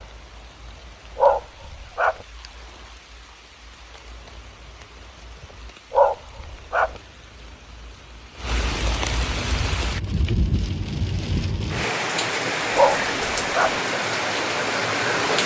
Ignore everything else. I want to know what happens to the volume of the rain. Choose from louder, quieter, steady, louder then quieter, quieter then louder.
louder.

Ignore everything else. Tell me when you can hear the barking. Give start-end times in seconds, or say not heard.
1.1-2.2, 5.9-6.9, 12.8-13.8.